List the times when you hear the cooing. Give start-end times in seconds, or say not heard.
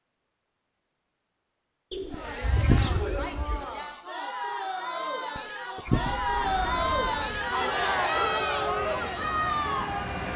1.9-3.6, 5.8-7.3.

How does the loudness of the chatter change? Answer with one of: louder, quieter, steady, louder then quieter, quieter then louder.
louder.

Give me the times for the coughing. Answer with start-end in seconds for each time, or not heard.
2.1-2.9, 5.3-6.2.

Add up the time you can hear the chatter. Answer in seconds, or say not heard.
8 s.